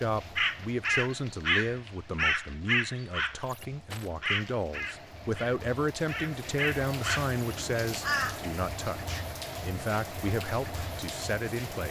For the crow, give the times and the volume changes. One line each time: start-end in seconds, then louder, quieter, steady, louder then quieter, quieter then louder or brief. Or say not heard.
0.3-8.4 quieter then louder.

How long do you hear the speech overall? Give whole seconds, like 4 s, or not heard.
12 s.